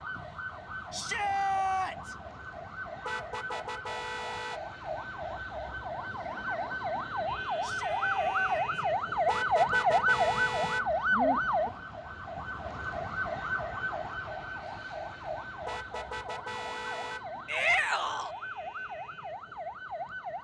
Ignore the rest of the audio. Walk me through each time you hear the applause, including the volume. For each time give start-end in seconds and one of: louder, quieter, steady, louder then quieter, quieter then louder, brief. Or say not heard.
not heard.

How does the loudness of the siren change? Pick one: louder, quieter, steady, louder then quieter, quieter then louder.
louder then quieter.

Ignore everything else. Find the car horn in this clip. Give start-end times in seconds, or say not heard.
3.0-4.6, 9.2-10.8, 15.7-17.2.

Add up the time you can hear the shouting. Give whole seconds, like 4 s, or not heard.
3 s.